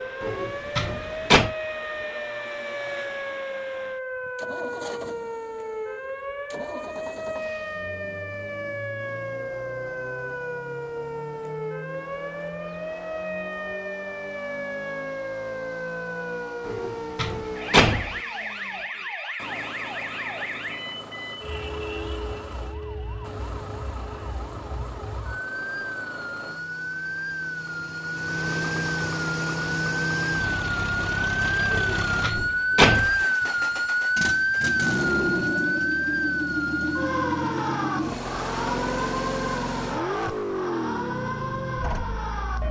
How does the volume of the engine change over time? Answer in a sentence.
The volume of the engine goes up.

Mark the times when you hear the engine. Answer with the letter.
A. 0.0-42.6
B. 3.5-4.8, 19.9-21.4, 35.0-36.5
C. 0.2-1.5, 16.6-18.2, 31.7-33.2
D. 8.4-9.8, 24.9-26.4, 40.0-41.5
A.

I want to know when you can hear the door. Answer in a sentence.
You can hear the door from 0.2 to 1.5 s, from 16.6 to 18.2 s and from 31.7 to 33.2 s.